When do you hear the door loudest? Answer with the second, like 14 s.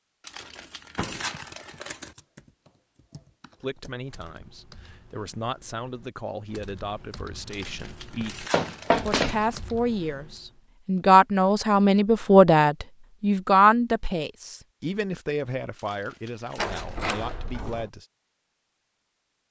9 s.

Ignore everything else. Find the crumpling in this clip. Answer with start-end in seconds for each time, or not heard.
0.2-2.1, 7.5-9.3, 15.8-17.0.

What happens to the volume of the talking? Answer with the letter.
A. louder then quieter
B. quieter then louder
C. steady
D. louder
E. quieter
A.